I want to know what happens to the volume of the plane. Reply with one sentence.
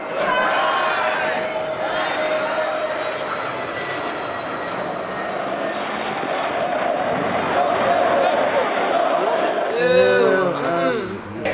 The volume of the plane goes down.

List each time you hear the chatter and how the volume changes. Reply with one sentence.
You can hear the chatter from 0.0 to 11.4 s, getting quieter then louder.